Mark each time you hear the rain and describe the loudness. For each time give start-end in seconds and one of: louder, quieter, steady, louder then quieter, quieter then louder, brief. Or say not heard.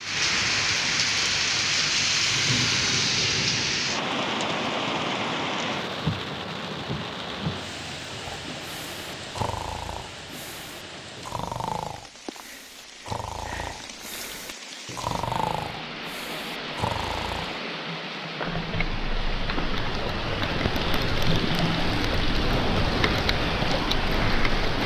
0.0-24.8 quieter then louder.